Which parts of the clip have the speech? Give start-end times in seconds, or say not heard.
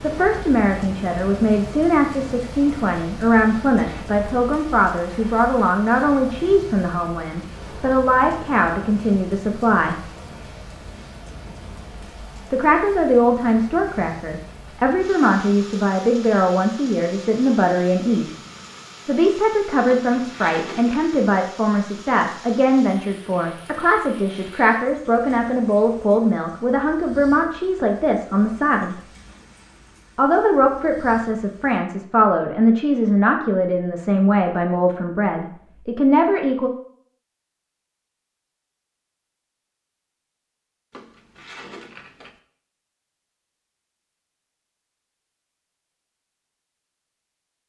0.0-9.9, 12.5-18.4, 19.1-29.0, 30.1-36.7.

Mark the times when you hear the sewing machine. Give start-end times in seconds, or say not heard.
not heard.